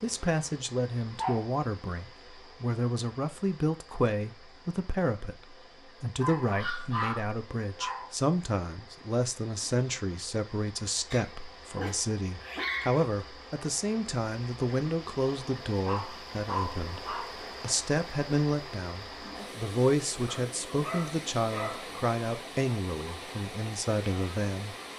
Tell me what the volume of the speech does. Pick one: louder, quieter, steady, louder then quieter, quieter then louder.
steady.